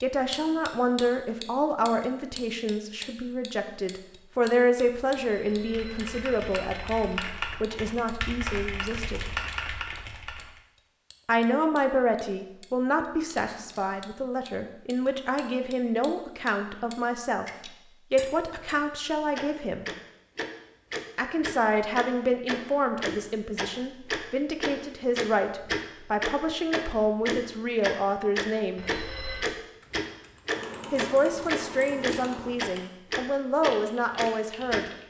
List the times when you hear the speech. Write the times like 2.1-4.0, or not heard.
0.0-9.2, 11.2-19.9, 21.1-28.9, 30.9-34.9.